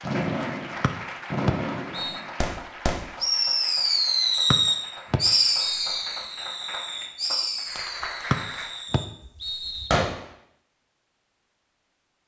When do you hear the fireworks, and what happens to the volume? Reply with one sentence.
You can hear the fireworks from 0.0 to 10.3 s, getting louder then quieter.